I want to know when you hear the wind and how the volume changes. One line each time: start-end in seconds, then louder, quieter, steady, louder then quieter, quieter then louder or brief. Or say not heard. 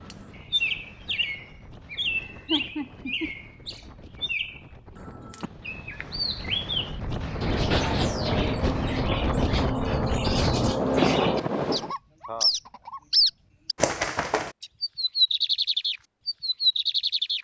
0.0-11.9 louder.